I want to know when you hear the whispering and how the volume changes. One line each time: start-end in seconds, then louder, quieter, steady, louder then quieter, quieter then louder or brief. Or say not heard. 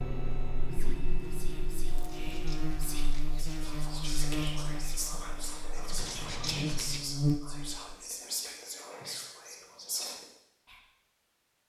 0.7-10.8 louder.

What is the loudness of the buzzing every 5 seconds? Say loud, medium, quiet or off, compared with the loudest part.
medium, loud, off.